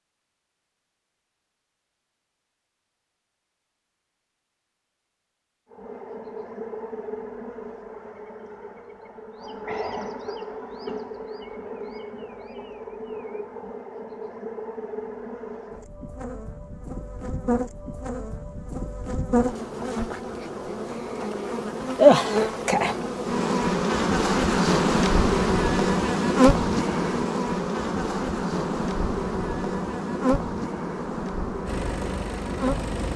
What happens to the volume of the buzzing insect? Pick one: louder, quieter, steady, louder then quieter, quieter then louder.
louder then quieter.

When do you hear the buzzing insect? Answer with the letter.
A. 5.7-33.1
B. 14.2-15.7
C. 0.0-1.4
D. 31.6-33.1
A.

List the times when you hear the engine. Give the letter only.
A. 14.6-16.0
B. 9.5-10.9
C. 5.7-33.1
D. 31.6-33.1
D.